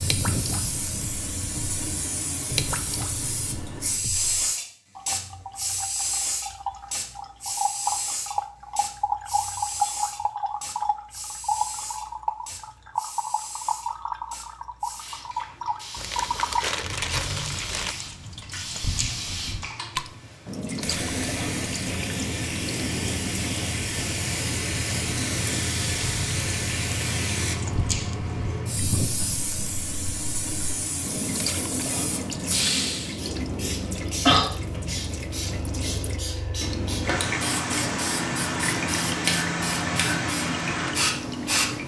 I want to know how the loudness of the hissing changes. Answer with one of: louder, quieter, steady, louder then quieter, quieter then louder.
quieter then louder.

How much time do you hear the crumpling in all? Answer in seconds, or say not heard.
2 s.